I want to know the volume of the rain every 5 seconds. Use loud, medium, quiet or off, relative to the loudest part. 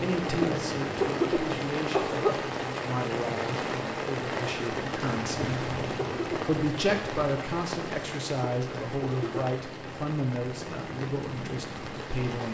loud, loud, medium.